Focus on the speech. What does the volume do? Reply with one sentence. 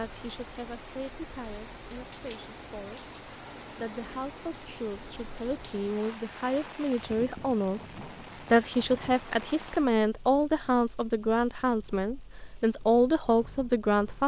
The volume of the speech goes up.